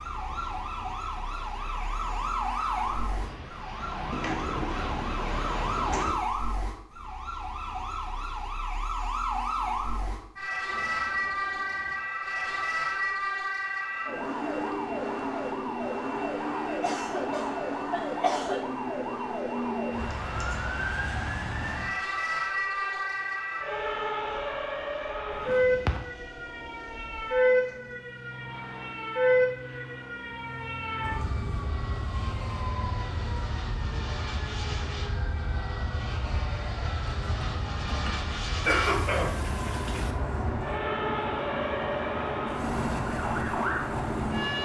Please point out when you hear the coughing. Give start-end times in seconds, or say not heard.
16.8-18.6, 38.6-40.1.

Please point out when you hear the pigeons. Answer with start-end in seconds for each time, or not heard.
4.1-6.2, 25.3-27.8.